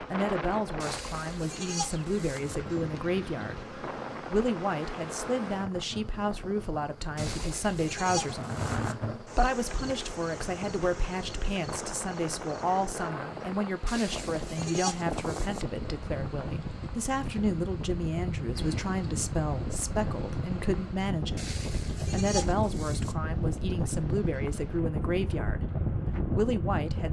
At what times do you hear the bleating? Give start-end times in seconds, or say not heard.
0.8-2.5, 7.2-8.9, 13.8-15.7, 21.4-23.1.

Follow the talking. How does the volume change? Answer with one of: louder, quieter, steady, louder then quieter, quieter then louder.
steady.